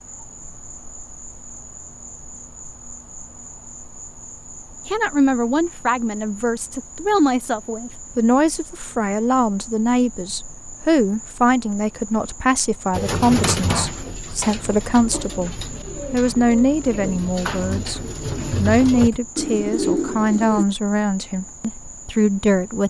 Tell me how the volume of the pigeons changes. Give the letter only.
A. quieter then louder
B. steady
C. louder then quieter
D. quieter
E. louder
A.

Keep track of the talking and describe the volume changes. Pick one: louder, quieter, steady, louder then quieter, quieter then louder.
steady.